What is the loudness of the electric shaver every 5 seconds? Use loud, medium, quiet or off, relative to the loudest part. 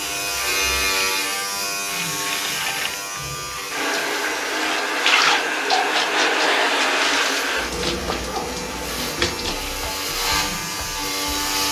loud, medium, loud.